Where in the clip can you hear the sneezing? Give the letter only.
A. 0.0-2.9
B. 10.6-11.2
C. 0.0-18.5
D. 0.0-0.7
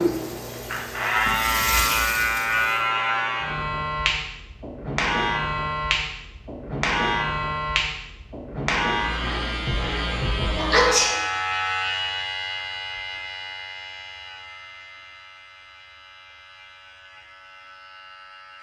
B.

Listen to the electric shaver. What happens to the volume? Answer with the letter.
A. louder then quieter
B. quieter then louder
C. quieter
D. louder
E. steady
C.